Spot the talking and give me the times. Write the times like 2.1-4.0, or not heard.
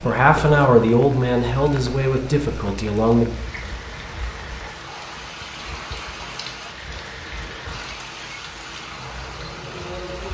0.0-3.3.